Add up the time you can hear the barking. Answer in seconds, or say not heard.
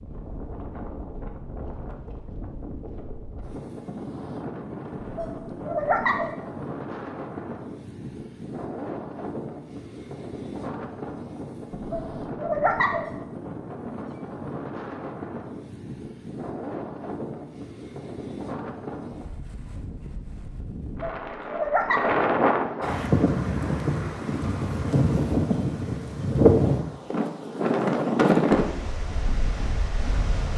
4 s.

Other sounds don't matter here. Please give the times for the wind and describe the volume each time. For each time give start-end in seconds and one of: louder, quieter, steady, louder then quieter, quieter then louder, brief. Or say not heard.
0.0-30.5 louder.